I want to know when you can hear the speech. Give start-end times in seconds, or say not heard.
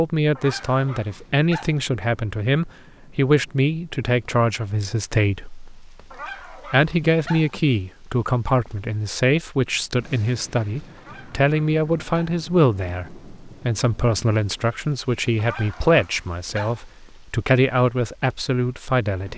0.0-5.7, 6.7-19.3.